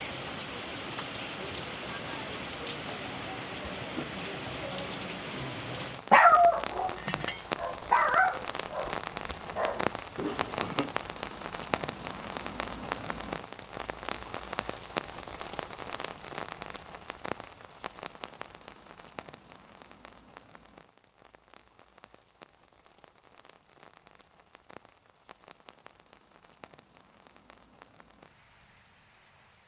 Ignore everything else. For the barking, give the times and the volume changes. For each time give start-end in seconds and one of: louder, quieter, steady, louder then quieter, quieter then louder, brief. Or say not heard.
6.1-10.9 louder then quieter.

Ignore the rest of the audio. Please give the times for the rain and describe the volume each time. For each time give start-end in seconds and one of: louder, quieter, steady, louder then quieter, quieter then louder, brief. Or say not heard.
0.0-29.6 quieter.